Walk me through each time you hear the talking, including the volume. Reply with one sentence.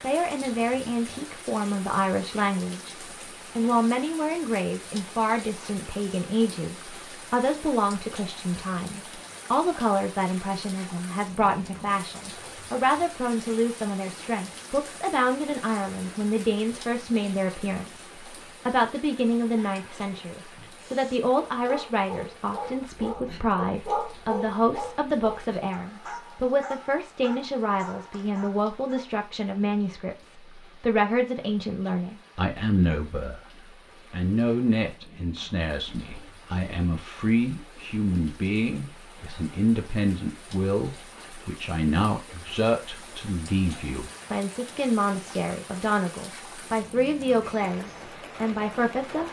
You can hear the talking briefly from 0.0 to 2.9 s; and from 3.5 to 49.2 s, at a steady volume.